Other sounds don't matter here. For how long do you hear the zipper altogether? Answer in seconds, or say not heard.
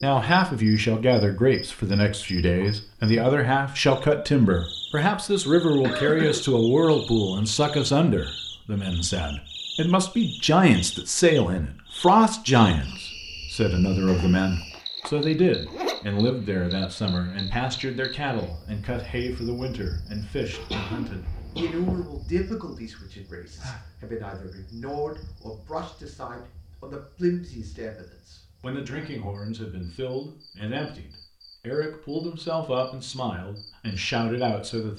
2 s.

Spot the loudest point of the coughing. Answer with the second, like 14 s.
6 s.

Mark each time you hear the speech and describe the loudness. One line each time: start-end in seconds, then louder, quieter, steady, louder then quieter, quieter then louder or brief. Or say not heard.
0.0-34.9 quieter.